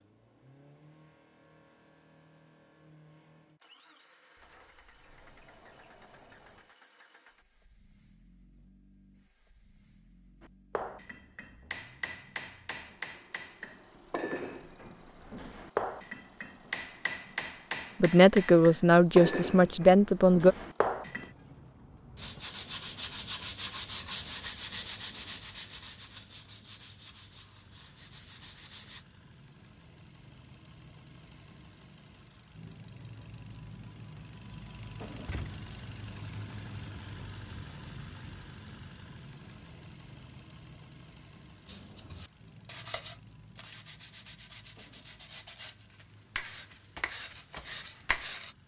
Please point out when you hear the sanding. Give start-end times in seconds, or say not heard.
22.1-29.1, 41.6-48.5.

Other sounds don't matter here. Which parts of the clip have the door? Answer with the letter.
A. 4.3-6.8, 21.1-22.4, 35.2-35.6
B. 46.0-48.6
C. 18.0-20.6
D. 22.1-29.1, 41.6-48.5
A.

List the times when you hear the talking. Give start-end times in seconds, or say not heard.
18.0-20.6.